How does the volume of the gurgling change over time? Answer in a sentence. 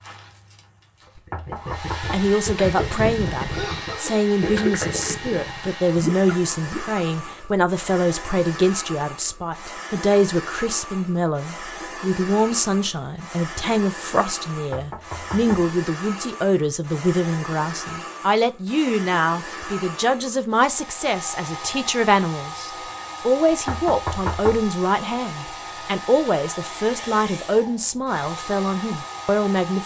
The loudness of the gurgling goes up.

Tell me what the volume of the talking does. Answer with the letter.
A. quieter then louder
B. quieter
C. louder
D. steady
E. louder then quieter
D.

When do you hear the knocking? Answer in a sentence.
The knocking can be heard from 1.1 to 2.4 s, from 14.6 to 15.7 s and from 23.5 to 24.7 s.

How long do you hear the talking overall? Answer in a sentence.
You can hear the talking for 28 seconds altogether.